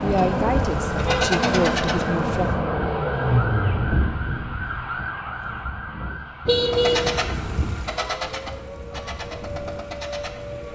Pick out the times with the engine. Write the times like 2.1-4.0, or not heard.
0.0-2.6, 6.7-10.7.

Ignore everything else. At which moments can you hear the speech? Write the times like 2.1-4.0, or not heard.
0.0-2.5.